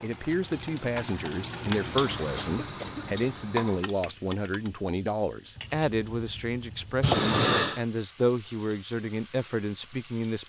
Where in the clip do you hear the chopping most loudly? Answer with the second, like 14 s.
7 s.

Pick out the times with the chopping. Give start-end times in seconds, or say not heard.
5.5-7.2.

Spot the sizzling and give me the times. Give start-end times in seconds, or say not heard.
0.0-10.4.